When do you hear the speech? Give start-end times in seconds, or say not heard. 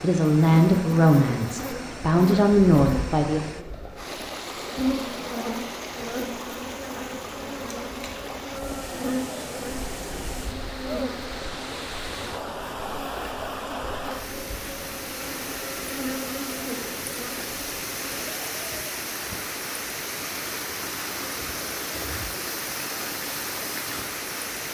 0.0-3.6.